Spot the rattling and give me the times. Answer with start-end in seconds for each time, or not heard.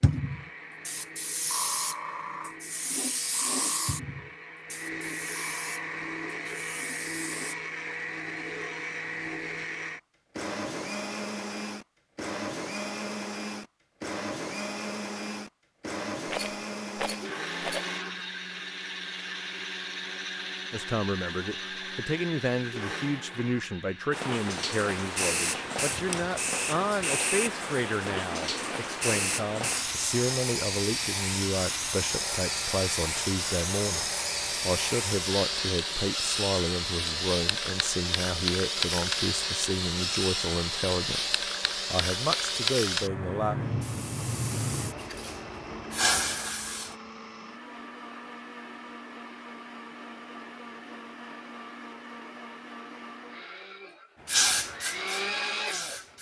16.2-17.9.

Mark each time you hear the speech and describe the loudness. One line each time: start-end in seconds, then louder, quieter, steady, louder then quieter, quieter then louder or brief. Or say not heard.
20.7-43.5 steady.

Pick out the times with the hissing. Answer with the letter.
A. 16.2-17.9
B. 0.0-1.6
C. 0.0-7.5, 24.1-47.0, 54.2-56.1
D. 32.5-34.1
C.